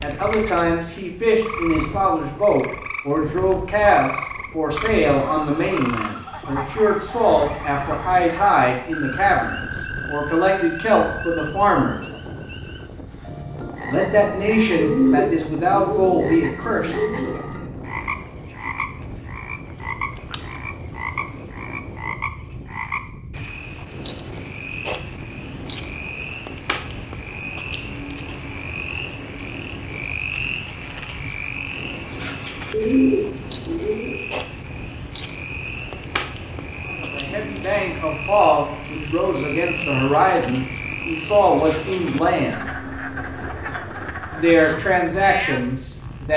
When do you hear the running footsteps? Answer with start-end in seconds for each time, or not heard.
not heard.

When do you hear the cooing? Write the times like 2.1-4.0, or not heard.
14.8-17.4, 32.7-34.2.